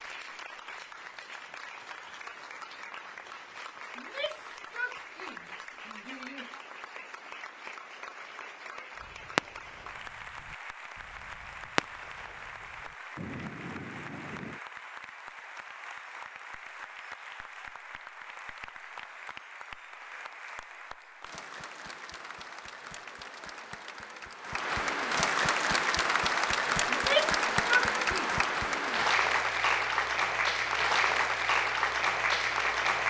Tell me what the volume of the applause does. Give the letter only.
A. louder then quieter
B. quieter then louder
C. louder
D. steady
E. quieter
C.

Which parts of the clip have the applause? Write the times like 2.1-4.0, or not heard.
0.0-33.0.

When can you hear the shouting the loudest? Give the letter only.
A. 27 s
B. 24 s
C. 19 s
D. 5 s
A.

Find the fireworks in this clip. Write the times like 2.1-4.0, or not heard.
8.9-14.6.